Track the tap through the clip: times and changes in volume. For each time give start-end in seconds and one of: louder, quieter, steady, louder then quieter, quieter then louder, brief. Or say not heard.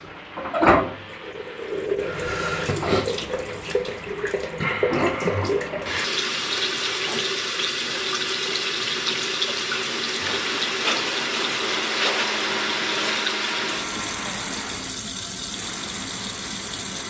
0.0-17.0 quieter.